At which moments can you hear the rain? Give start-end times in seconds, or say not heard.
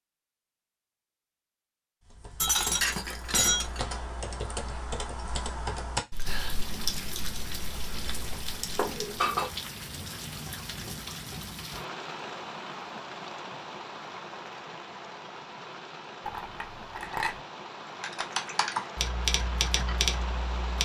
6.2-20.7.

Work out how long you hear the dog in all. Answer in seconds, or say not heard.
not heard.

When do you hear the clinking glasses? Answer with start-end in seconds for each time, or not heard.
2.4-3.8, 8.8-9.5, 16.2-17.4.